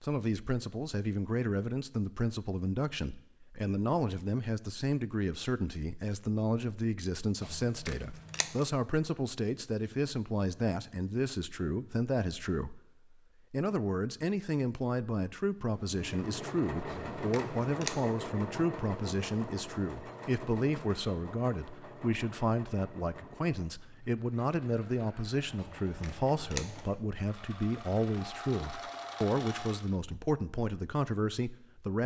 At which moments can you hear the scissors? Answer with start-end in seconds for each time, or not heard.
7.4-8.7, 16.9-17.9, 25.6-26.8.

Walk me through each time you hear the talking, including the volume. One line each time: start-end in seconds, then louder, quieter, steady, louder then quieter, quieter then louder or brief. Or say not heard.
0.0-12.8 steady
13.5-32.0 steady.